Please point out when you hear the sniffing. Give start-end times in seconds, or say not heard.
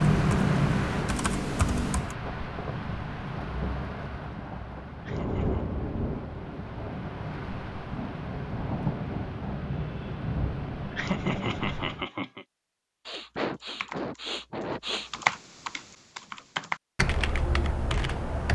13.1-15.4.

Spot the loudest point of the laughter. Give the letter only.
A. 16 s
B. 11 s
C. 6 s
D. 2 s
B.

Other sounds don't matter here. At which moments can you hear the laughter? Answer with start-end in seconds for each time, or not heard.
5.0-5.7, 10.9-12.4.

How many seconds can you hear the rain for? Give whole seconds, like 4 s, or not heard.
12 s.